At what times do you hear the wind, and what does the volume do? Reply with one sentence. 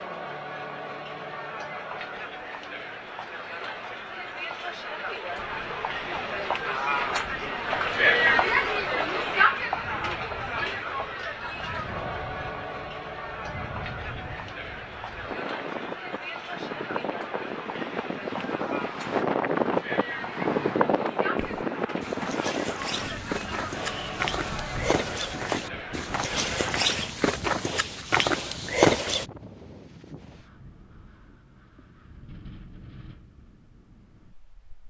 You can hear the wind from 5.3 to 34.8 s, getting louder then quieter.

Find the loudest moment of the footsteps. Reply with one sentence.
The volume of the footsteps peaks at 29 seconds.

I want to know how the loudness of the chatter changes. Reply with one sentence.
The volume of the chatter goes up, then down.